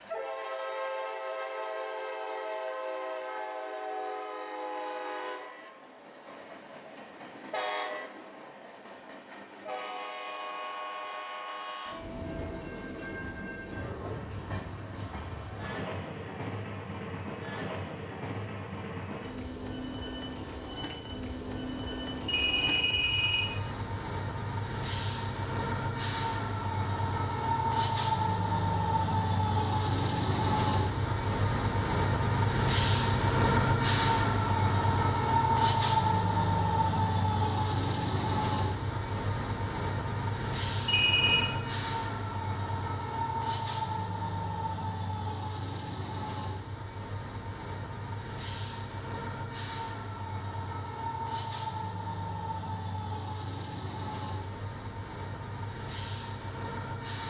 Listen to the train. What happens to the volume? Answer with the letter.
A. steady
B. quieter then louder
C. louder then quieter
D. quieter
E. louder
C.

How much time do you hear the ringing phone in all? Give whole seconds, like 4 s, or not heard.
2 s.